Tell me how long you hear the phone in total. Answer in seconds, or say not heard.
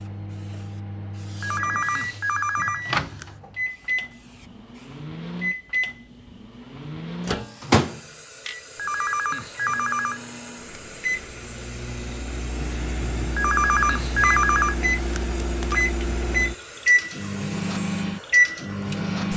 6 s.